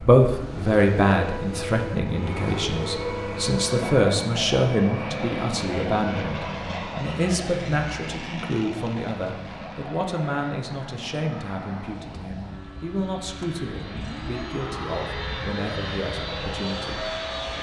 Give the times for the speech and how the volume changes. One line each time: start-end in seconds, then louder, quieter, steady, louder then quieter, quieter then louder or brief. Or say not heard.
0.0-17.0 quieter.